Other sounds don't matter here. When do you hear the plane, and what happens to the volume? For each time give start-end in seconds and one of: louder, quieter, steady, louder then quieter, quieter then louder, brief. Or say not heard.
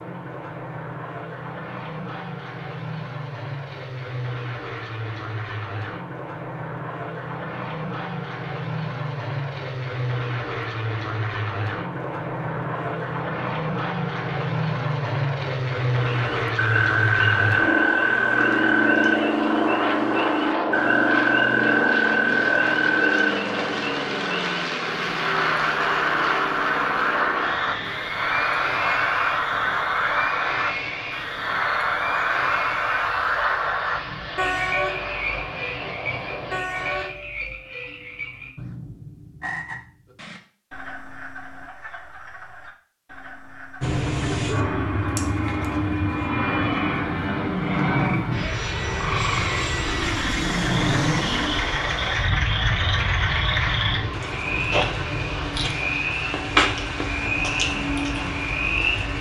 0.0-37.1 louder then quieter
43.8-59.1 quieter.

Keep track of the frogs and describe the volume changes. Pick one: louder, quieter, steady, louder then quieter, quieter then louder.
quieter then louder.